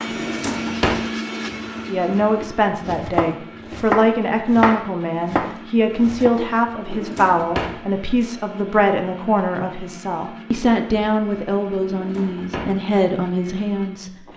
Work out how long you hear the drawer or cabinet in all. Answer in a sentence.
You can hear the drawer or cabinet for 3 seconds altogether.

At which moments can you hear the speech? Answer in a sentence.
The speech can be heard from 1.9 to 14.1 s.